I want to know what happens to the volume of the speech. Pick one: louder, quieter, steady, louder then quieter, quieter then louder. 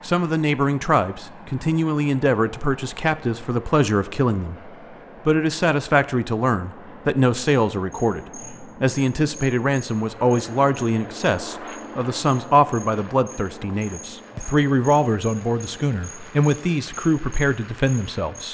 steady.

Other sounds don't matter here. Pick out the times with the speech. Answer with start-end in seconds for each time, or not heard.
0.0-18.4.